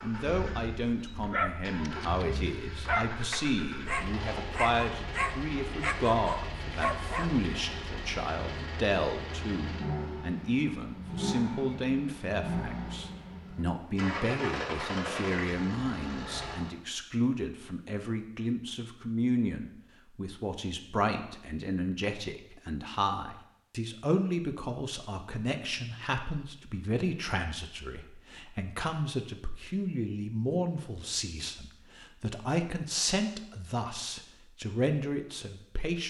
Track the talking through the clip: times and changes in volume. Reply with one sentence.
You can hear the talking from 0.0 to 36.0 s, at a steady volume.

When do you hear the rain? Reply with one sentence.
You can't hear the rain here.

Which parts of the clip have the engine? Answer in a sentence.
The engine can be heard from 0.0 to 16.7 s.